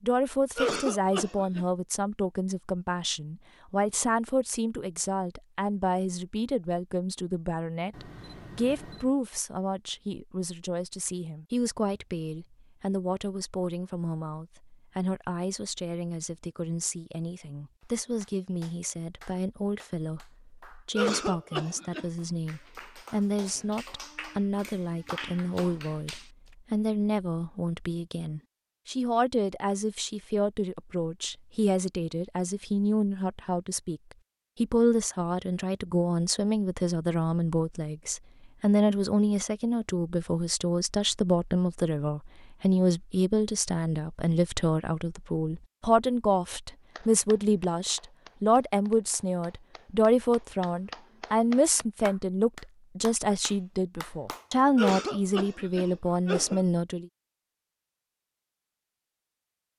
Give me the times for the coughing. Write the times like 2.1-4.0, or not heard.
0.6-1.6, 20.9-22.1, 54.8-56.6.